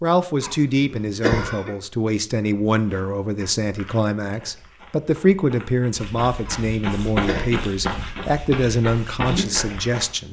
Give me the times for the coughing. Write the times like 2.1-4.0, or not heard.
0.4-1.8, 6.5-7.5.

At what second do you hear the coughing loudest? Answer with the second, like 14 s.
1 s.